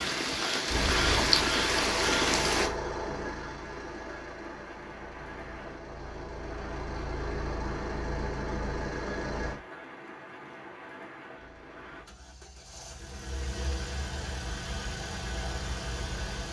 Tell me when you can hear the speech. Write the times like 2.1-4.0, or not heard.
not heard.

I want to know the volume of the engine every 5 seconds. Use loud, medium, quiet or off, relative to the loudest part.
loud, loud, medium, loud.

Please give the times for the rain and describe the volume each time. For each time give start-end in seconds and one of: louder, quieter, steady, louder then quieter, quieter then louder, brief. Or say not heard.
0.0-12.1 quieter.